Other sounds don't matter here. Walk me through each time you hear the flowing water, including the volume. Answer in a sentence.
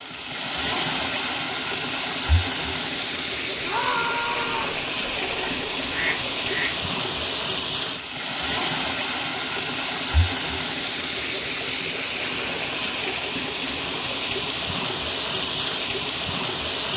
The flowing water can be heard from 0.0 to 16.9 s, at a steady volume.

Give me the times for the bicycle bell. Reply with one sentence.
The bicycle bell can't be heard in this clip.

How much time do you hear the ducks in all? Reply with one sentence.
You can hear the ducks for 2 seconds altogether.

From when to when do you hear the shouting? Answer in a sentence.
The shouting can be heard from 3.6 to 4.8 s.